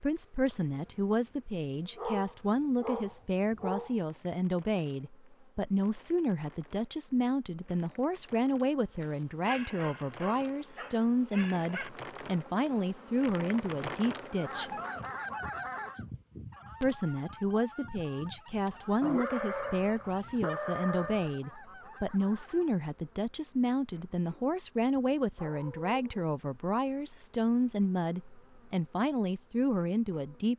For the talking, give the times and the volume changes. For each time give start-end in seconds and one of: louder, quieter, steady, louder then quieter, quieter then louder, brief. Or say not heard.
0.0-14.7 steady
16.8-30.5 steady.